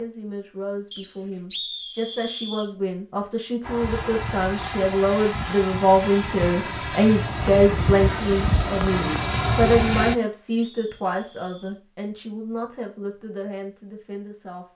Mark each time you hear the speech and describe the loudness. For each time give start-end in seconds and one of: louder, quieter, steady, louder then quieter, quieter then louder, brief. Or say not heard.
0.0-14.7 louder then quieter.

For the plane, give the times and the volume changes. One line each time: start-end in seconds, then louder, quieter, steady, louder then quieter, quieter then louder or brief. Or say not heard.
3.6-10.2 louder.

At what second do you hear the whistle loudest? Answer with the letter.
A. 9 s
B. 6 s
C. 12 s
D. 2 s
D.